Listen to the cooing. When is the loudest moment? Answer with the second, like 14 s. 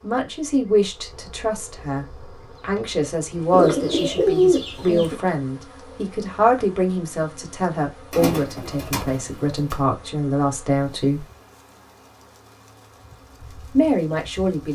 4 s.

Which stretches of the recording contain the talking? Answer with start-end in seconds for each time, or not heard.
0.0-11.2, 13.7-14.6.